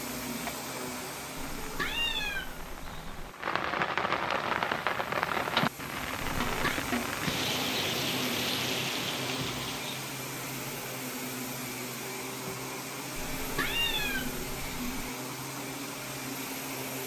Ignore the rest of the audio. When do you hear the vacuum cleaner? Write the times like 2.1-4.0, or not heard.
0.0-17.0.